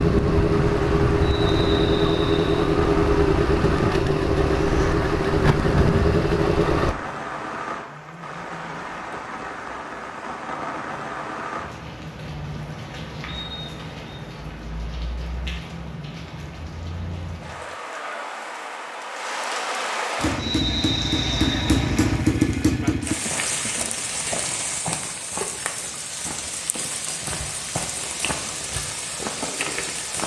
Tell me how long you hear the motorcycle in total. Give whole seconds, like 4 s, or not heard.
10 s.